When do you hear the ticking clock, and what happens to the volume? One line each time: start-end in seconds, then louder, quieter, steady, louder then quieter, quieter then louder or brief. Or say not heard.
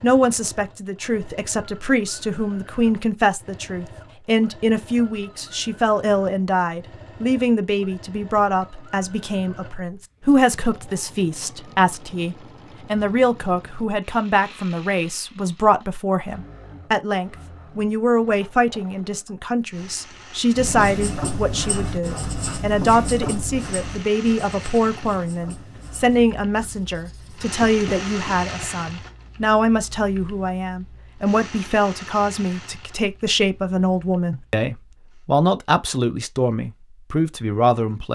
not heard.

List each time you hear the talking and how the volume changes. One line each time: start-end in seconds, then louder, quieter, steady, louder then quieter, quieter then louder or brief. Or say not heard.
0.0-38.1 steady.